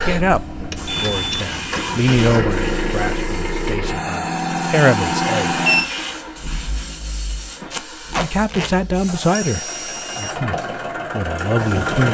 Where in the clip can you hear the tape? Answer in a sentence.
The tape can be heard from 7.7 to 8.7 s.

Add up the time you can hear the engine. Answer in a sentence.
You can hear the engine for 12 seconds altogether.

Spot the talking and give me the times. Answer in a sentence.
The talking can be heard from 0.0 to 5.6 s and from 8.2 to 12.1 s.